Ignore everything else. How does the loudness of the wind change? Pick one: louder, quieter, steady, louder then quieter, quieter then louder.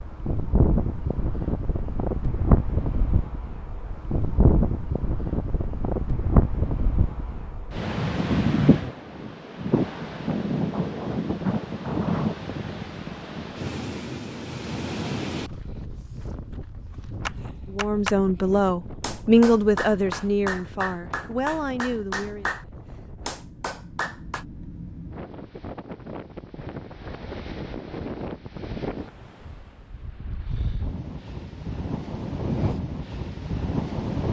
quieter then louder.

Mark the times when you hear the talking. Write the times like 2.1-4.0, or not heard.
17.7-22.6.